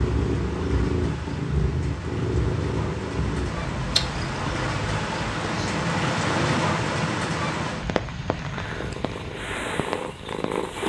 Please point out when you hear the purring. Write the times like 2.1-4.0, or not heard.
0.0-5.8, 8.3-10.8.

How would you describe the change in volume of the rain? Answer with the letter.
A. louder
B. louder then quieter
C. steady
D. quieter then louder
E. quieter
B.